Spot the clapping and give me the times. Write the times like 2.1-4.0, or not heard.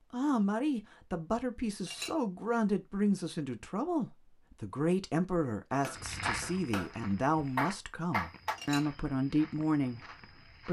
5.8-6.9, 7.5-8.6.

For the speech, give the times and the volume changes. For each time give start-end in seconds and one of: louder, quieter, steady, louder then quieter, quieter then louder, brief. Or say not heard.
0.1-10.6 steady.